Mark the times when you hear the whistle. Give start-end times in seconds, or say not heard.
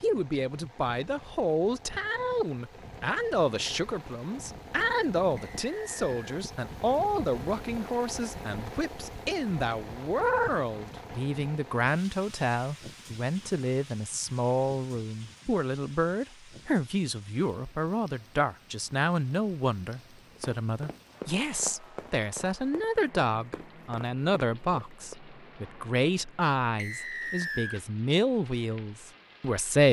5.3-6.3, 26.8-27.8.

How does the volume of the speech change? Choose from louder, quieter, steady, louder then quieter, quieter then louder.
steady.